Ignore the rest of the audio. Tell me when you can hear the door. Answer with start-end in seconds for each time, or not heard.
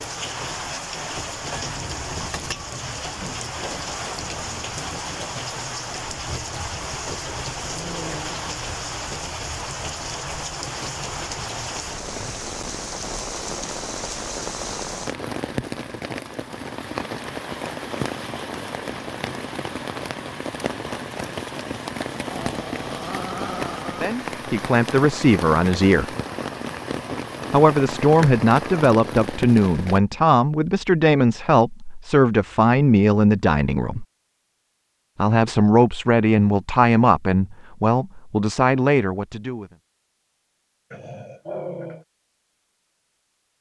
not heard.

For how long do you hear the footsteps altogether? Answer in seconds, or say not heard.
not heard.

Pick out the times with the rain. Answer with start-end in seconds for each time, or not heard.
0.0-30.0.